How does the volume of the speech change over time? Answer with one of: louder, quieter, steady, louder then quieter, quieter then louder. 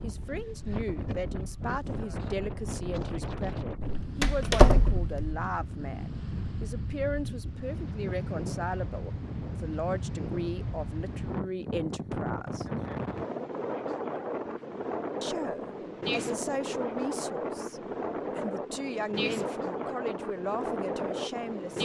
steady.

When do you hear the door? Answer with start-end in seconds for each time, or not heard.
3.8-5.3.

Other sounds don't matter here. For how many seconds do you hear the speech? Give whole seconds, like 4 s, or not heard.
19 s.